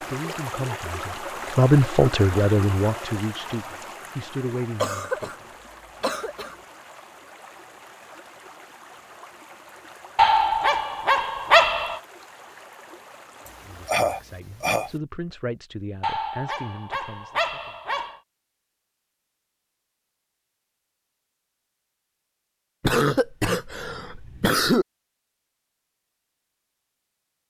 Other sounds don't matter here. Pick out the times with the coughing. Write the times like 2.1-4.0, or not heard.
4.8-5.3, 6.0-6.5, 13.4-14.9, 22.8-24.9.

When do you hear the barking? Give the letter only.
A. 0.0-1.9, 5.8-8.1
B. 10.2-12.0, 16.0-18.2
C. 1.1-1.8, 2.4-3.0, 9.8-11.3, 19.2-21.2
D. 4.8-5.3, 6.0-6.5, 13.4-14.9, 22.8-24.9
B.